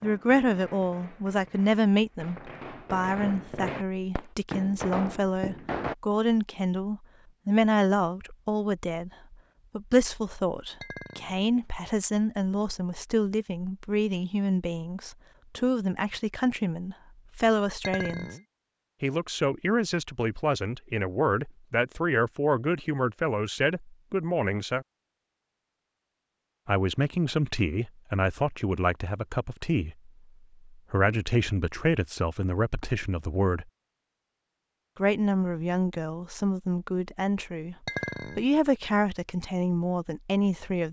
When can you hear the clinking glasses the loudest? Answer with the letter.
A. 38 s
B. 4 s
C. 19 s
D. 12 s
A.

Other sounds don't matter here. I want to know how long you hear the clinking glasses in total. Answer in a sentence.
The clinking glasses can be heard for 2 seconds in total.